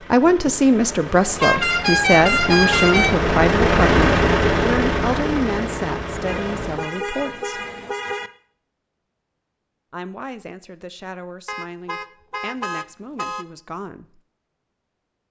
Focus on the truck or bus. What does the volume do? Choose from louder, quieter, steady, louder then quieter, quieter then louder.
louder then quieter.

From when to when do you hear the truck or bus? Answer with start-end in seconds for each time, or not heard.
0.0-6.9.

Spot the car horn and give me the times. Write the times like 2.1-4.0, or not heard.
1.4-3.1, 6.2-8.3, 11.4-13.4.